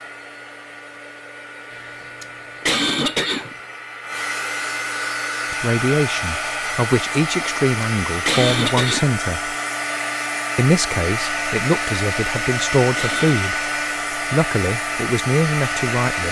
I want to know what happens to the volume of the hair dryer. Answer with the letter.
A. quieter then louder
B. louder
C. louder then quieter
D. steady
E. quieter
B.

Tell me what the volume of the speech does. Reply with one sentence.
The volume of the speech stays about the same.